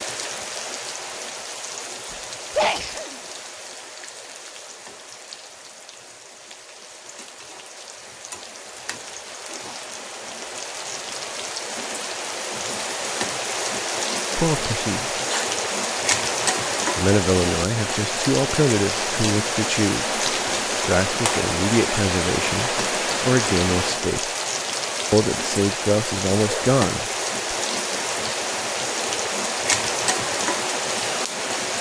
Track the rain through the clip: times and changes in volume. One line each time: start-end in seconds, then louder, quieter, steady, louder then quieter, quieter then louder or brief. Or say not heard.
0.0-31.7 louder.